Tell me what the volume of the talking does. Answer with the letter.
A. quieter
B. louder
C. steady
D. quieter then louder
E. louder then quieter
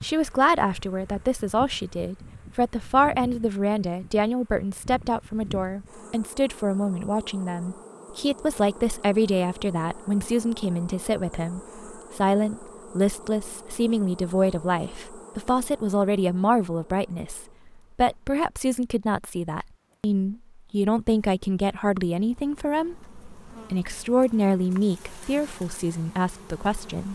C.